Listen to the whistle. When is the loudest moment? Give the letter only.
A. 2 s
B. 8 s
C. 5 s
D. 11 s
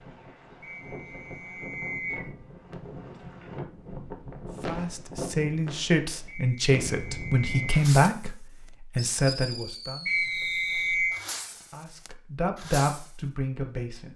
D.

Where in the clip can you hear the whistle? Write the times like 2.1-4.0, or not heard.
0.6-2.3, 6.2-7.8, 10.1-11.2.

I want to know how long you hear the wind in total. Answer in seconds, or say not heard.
8 s.